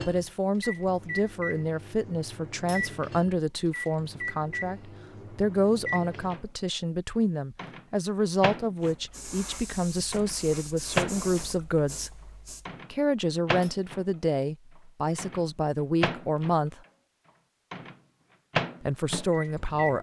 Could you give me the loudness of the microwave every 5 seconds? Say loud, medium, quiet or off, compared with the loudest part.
medium, medium, loud, loud.